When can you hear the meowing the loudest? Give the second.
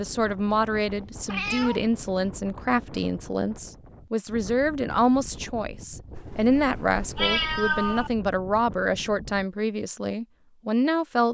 7 s.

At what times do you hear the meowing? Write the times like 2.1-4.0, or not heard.
1.1-2.3, 6.2-8.1.